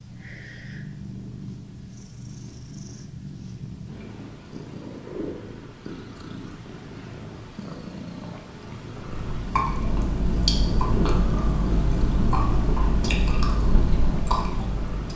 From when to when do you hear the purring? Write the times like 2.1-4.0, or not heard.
0.0-15.1.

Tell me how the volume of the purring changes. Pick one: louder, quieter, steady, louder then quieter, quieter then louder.
steady.